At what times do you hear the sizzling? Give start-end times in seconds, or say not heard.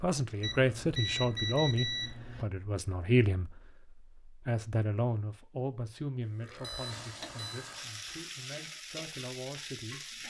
6.7-10.2.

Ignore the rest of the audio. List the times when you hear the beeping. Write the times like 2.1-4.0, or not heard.
0.4-2.5, 6.5-7.7.